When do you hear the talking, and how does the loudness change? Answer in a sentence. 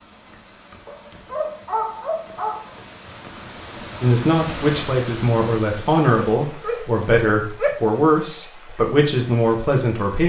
You can hear the talking from 4.0 to 10.2 s, at a steady volume.